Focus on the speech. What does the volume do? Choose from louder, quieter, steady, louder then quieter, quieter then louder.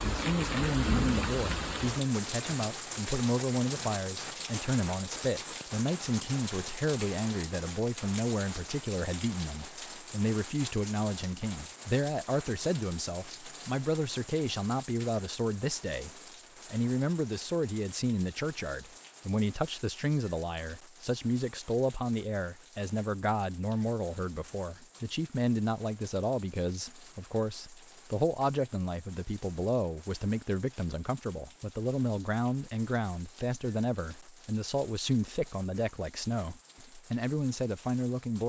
steady.